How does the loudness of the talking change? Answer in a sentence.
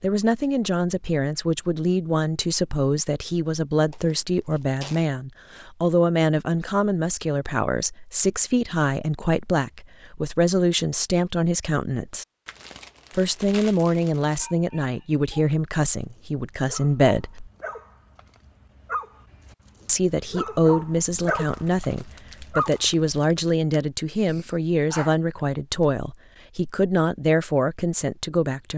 The volume of the talking stays about the same.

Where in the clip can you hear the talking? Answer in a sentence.
You can hear the talking from 0.0 to 12.2 s, from 13.2 to 17.5 s and from 19.9 to 28.7 s.